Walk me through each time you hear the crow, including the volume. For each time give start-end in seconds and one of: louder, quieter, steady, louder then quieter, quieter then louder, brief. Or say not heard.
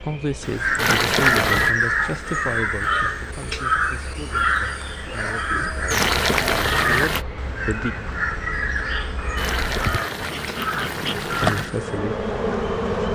0.4-11.9 quieter.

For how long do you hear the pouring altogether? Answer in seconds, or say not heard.
5 s.